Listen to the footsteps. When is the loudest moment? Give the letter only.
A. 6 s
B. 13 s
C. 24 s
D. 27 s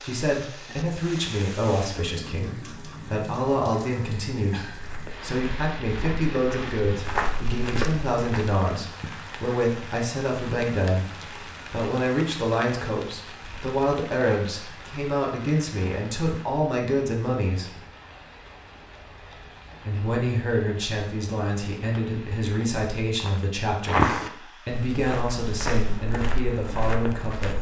C.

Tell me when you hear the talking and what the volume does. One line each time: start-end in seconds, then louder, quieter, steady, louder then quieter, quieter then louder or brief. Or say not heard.
0.0-17.8 steady
19.9-27.5 steady.